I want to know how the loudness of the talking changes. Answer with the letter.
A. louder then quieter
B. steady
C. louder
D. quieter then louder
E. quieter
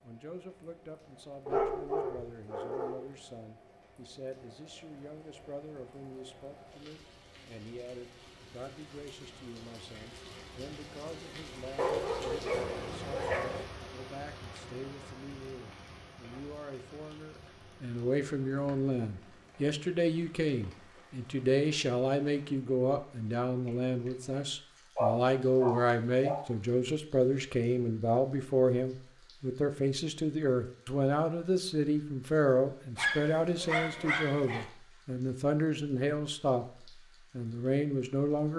C.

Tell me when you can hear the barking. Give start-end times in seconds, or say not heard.
1.4-3.0, 11.8-13.7, 24.9-26.4, 33.0-34.7.